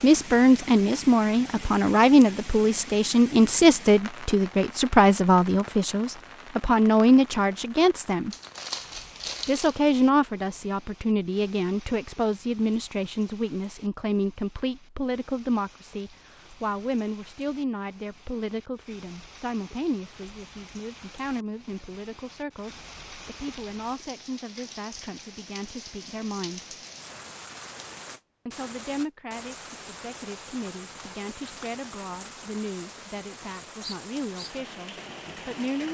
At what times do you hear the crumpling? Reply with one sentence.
You can hear the crumpling from 8.3 to 9.8 s.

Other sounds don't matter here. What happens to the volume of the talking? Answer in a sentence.
The volume of the talking goes down.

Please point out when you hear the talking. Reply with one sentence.
The talking can be heard from 0.0 to 8.3 s, from 9.4 to 26.8 s and from 28.4 to 35.8 s.